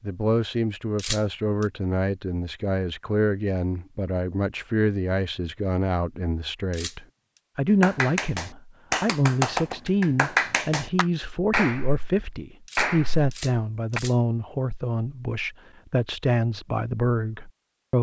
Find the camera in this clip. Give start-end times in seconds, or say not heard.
0.9-1.6, 6.7-7.4, 12.7-14.2.